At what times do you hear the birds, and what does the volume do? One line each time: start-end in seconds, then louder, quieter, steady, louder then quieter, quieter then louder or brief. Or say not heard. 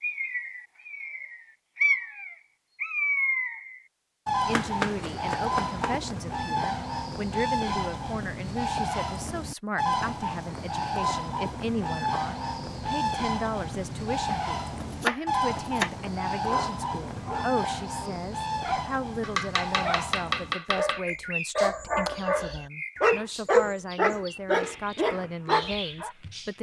0.0-26.5 quieter.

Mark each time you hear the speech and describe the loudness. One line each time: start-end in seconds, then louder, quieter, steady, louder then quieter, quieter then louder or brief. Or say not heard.
4.5-26.5 steady.